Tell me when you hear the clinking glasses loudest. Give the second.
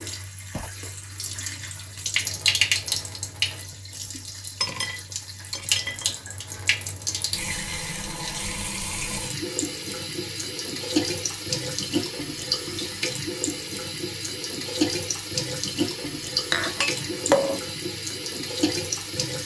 17 s.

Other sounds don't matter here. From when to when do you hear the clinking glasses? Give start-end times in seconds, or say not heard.
4.2-6.2, 16.5-17.6.